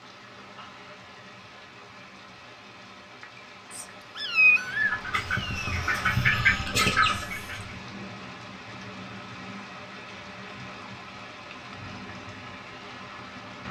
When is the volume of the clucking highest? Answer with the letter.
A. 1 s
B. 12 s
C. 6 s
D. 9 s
C.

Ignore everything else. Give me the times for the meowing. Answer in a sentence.
The meowing can be heard from 3.7 to 5.7 s.